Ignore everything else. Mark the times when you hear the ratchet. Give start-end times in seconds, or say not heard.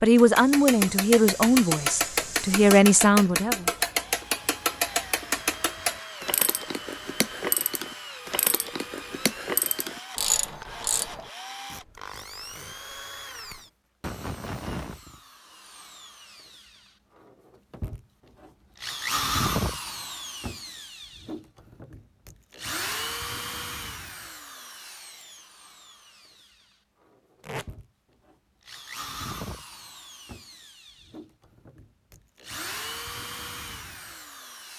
0.1-11.3.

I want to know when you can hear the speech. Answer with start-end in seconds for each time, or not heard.
0.0-3.6.